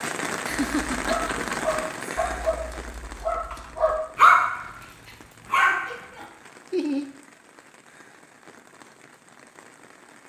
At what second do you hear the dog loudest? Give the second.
4 s.